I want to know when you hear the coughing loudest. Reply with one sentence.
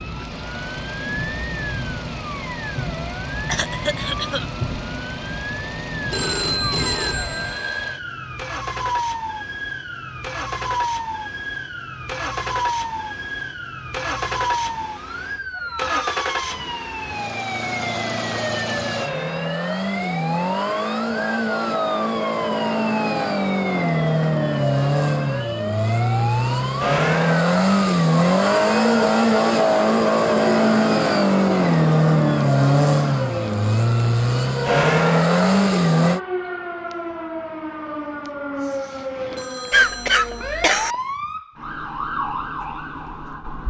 The loudest moment of the coughing is at 40 seconds.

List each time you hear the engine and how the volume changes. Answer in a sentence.
The engine can be heard from 0.0 to 36.2 s, getting louder.